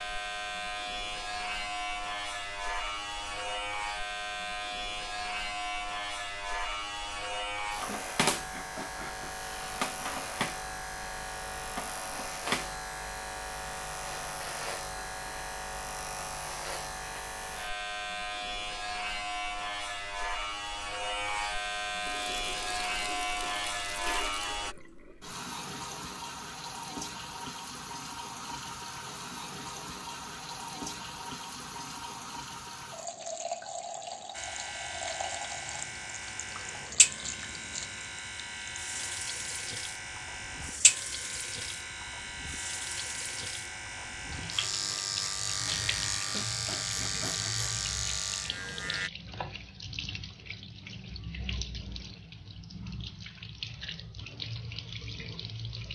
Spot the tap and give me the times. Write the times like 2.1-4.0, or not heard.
22.0-55.9.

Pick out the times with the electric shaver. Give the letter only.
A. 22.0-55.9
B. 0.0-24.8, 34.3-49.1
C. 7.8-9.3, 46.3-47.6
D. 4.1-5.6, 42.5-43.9
B.